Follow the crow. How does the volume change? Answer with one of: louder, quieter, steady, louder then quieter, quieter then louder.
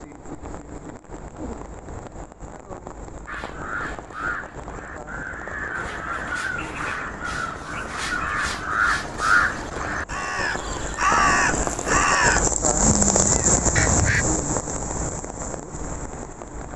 louder.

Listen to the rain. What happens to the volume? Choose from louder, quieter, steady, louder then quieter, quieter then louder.
louder.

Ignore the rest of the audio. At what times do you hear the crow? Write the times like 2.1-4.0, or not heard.
3.2-14.2.